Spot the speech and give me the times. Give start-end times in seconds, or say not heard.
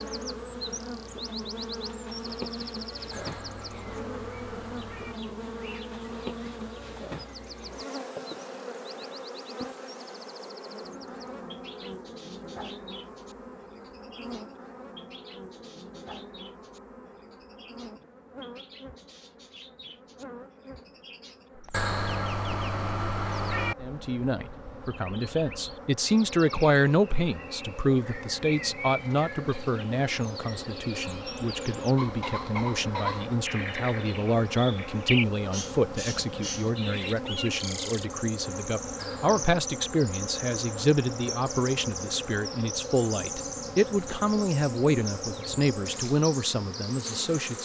23.8-47.6.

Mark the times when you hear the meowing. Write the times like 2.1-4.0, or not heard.
3.1-5.2, 21.7-23.8, 39.0-39.4.